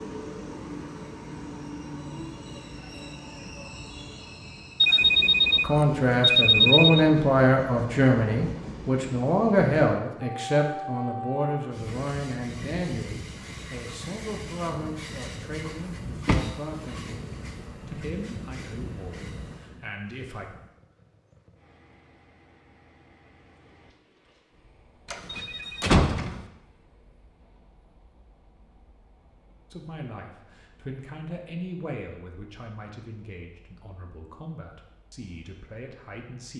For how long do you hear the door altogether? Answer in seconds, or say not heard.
2 s.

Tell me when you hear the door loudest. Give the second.
26 s.